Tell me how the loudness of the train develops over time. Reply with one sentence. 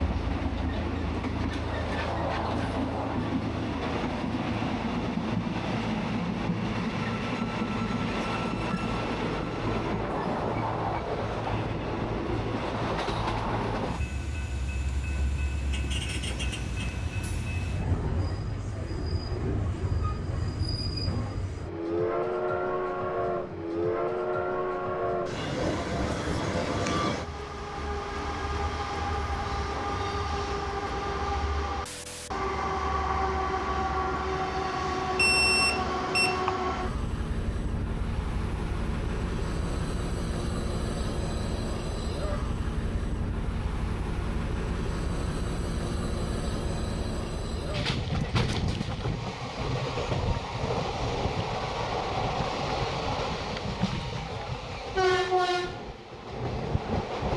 The volume of the train stays about the same.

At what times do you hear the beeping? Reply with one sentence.
The beeping can be heard from 35.1 to 36.5 s.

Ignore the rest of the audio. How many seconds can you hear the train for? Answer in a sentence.
The train can be heard for 57 seconds in total.